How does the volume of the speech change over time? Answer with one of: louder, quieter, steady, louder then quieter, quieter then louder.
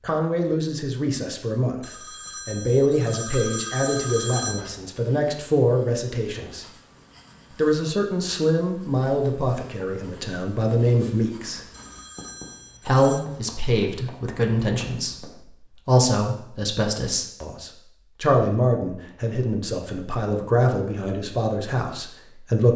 steady.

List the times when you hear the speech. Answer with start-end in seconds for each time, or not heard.
0.0-6.7, 7.5-11.6, 12.8-22.7.